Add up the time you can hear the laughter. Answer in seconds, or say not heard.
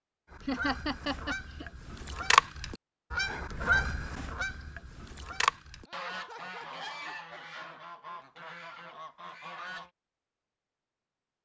3 s.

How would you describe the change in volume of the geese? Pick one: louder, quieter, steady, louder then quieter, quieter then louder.
quieter.